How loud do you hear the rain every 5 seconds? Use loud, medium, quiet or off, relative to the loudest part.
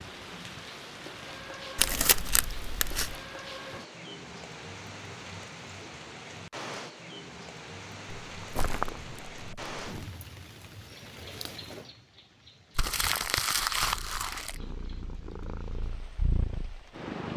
loud, loud, medium, quiet.